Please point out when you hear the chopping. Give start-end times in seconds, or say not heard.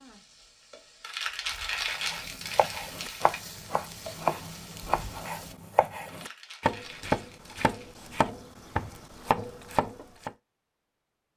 2.0-10.3.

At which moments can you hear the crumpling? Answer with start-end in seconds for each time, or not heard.
1.0-3.4, 6.0-8.1.